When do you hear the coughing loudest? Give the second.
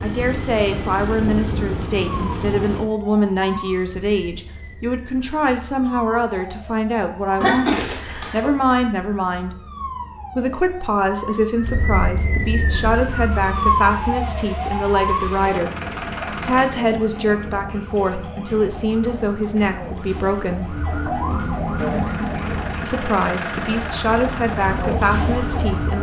8 s.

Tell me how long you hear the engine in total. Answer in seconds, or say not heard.
11 s.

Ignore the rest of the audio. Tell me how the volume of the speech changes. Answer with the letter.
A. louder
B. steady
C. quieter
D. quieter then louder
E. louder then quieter
B.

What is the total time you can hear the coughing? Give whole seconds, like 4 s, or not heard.
2 s.